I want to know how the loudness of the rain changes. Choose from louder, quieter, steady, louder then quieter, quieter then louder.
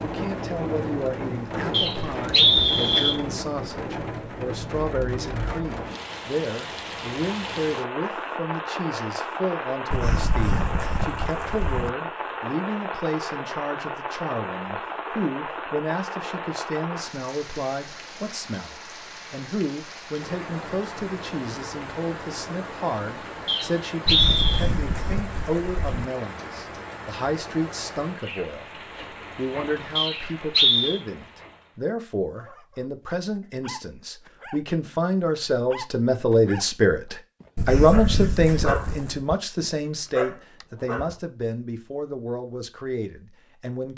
quieter.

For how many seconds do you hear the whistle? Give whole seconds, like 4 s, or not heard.
4 s.